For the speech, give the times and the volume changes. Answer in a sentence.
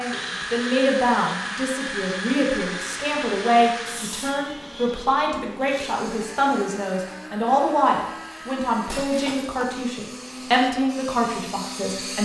The speech can be heard from 0.0 to 12.1 s, at a steady volume.